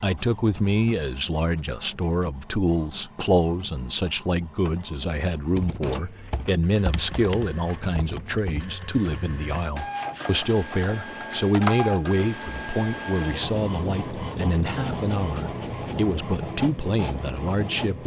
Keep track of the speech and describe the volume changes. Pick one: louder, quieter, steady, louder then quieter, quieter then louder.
steady.